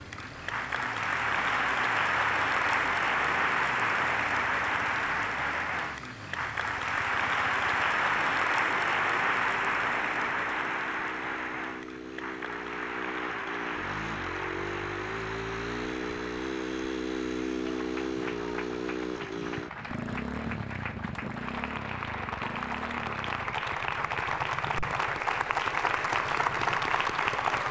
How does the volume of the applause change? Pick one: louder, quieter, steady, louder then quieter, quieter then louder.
quieter then louder.